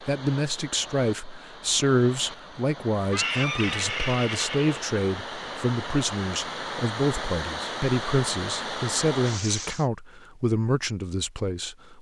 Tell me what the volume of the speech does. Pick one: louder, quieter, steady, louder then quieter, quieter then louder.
steady.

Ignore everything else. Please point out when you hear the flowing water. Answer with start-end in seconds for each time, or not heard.
0.0-9.8.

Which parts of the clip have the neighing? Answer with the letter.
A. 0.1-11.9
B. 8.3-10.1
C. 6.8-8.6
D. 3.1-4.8
D.